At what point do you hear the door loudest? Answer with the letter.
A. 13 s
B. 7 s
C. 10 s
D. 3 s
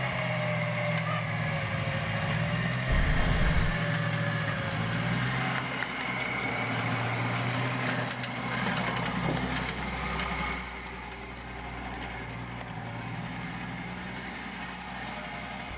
D.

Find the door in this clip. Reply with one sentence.
The door can be heard from 2.9 to 3.8 s and from 9.2 to 9.9 s.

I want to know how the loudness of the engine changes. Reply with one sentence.
The volume of the engine goes down.